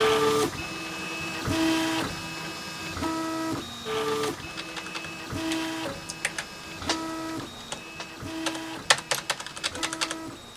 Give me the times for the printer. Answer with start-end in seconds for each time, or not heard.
0.0-10.5.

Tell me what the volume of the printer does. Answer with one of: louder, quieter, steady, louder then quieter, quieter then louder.
quieter.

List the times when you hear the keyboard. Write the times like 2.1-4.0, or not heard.
4.0-10.5.